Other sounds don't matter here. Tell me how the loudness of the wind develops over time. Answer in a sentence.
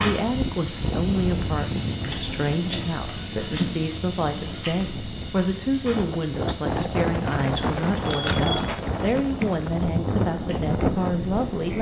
The volume of the wind goes down, then up.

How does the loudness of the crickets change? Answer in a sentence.
The loudness of the crickets goes down.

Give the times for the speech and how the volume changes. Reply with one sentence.
The speech can be heard from 0.0 to 11.7 s, at a steady volume.